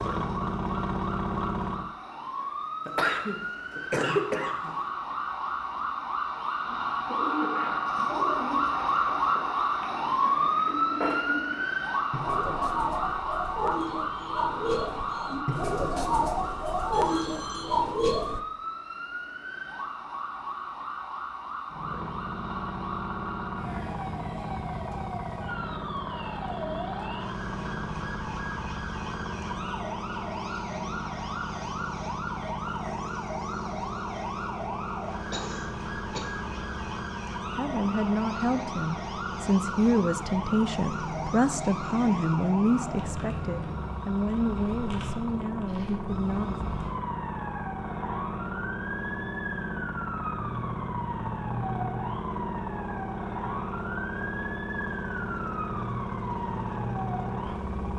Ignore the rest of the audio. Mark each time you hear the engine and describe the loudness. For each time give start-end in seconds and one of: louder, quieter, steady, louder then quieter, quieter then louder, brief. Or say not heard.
0.0-1.9 brief
21.6-57.9 steady.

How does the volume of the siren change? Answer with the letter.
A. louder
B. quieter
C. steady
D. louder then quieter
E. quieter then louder
B.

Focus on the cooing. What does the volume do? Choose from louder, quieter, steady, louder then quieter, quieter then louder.
louder.